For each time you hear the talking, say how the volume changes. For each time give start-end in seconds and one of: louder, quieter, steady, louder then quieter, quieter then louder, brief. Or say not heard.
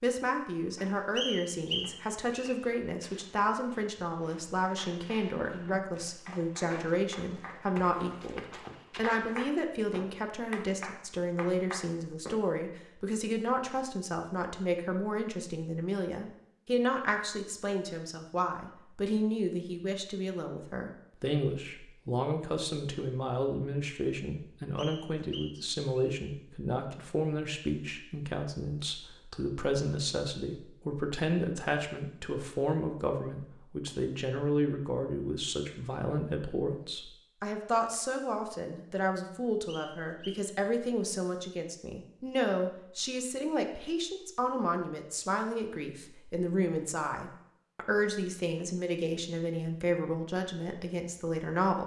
0.0-51.8 steady.